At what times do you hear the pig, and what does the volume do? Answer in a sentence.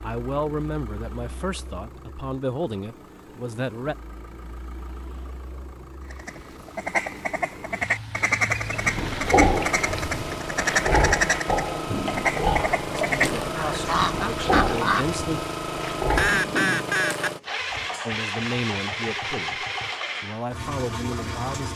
The pig can be heard from 8.7 to 16.5 s, getting quieter.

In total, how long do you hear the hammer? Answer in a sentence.
The hammer can't be heard in this clip.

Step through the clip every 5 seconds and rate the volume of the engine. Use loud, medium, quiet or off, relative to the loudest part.
quiet, medium, loud, loud, loud.